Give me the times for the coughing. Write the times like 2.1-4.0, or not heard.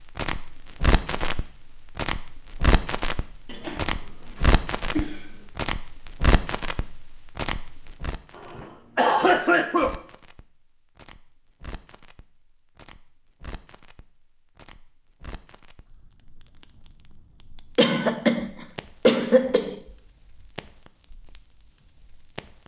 3.5-5.3, 8.3-9.9, 17.8-19.8.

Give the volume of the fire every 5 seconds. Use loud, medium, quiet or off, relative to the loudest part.
loud, loud, quiet, quiet, quiet.